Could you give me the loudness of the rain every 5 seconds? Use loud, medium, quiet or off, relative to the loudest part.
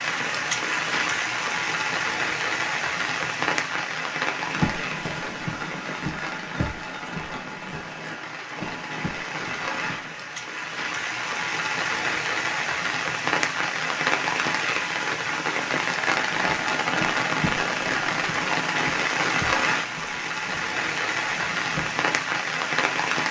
loud, medium, loud, loud, loud.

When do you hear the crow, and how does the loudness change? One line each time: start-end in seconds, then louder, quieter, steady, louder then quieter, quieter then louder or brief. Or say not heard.
4.4-10.3 quieter
16.3-22.0 quieter.